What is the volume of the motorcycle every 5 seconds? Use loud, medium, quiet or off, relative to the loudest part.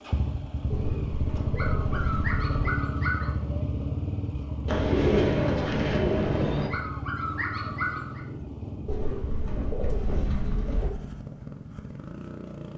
loud, medium, medium.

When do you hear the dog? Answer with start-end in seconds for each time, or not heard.
1.6-3.4, 6.7-8.2.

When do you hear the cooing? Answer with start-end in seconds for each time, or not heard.
0.7-2.7, 4.7-6.7, 8.8-10.9.